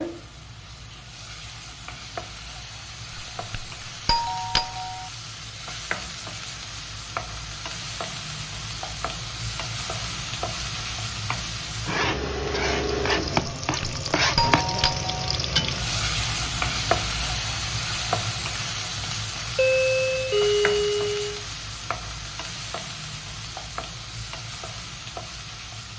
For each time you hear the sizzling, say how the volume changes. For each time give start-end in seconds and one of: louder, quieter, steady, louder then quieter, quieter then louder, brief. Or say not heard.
0.0-25.9 louder then quieter.